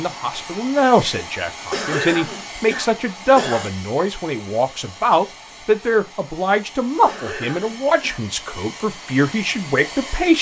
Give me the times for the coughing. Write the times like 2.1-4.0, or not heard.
1.7-3.7, 7.0-8.2.